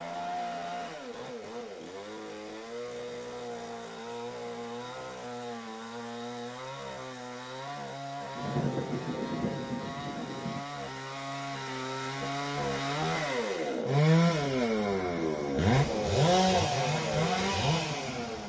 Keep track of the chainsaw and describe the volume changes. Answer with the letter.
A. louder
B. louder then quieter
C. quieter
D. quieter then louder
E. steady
A.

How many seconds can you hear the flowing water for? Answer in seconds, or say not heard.
not heard.